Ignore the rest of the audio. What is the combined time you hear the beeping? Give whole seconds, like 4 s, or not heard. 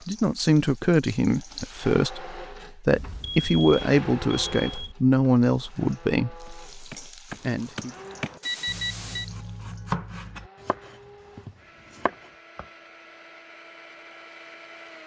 3 s.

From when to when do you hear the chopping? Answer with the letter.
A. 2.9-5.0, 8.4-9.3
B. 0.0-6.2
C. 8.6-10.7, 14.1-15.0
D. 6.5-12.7
D.